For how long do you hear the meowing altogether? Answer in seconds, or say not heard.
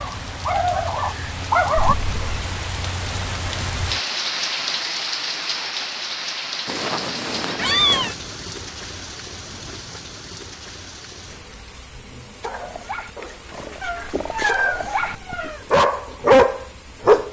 4 s.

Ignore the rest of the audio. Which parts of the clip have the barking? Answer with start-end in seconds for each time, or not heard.
0.0-1.9, 12.4-17.2.